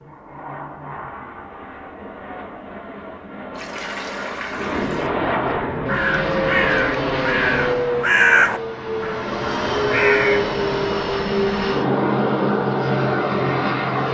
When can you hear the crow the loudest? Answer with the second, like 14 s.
8 s.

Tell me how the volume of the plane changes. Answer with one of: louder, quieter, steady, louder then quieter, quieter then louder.
louder.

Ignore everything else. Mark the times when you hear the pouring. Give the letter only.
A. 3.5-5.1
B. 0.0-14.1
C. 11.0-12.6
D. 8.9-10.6
A.